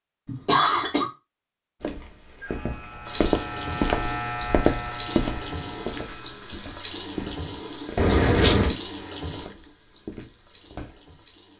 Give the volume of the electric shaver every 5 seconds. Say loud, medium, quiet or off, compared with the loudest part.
loud, medium, off.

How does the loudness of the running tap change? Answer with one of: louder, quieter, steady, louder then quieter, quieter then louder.
quieter.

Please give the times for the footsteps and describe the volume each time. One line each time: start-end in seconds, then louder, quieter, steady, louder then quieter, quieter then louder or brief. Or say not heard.
1.8-11.2 quieter.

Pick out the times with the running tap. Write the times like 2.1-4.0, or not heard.
3.0-11.5.